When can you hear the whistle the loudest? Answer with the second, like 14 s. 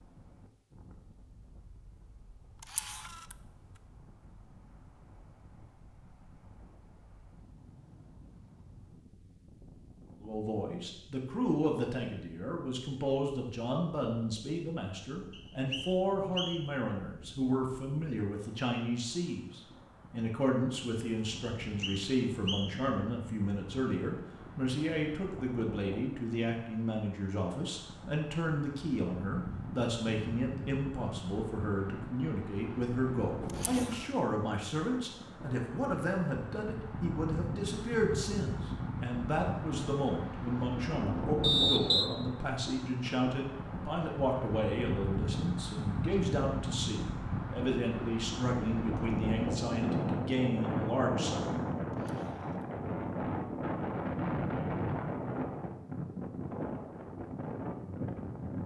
42 s.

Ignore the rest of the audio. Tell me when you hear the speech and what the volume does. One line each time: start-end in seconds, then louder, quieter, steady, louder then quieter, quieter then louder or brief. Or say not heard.
10.2-51.5 steady.